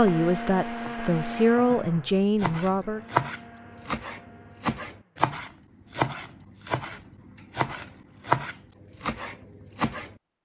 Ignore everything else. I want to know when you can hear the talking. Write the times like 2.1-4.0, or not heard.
0.0-3.0.